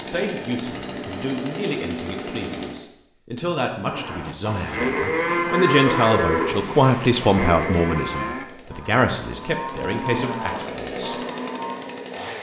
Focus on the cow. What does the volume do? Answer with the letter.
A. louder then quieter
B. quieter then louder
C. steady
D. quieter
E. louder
D.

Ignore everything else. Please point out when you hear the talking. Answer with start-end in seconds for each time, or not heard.
0.0-11.2.